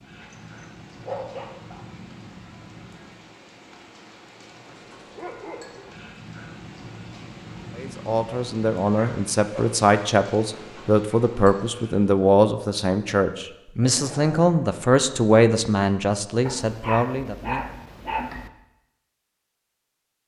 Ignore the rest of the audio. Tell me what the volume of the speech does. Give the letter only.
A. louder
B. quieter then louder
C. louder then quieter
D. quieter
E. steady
E.